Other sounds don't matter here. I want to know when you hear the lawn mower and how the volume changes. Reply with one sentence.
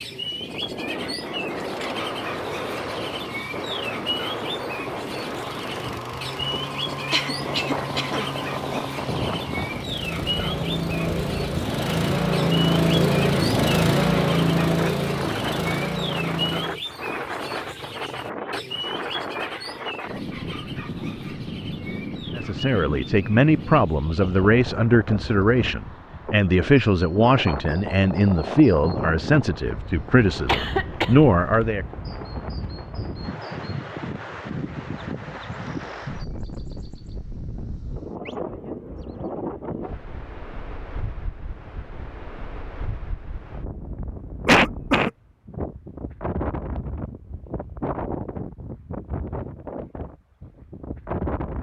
The lawn mower can be heard from 1.6 to 16.9 s, getting louder.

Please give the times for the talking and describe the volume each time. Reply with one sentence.
You can hear the talking from 22.4 to 31.9 s, at a steady volume.